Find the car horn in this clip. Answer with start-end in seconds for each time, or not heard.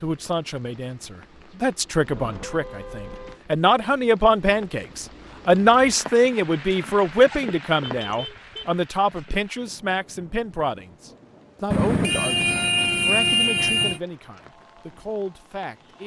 2.0-3.4, 7.8-8.7, 11.7-14.0.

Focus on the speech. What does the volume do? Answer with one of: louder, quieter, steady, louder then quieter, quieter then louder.
louder then quieter.